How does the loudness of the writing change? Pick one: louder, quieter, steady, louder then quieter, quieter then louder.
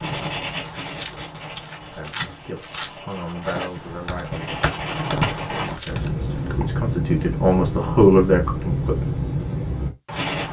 louder.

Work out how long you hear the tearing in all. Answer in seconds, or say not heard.
3 s.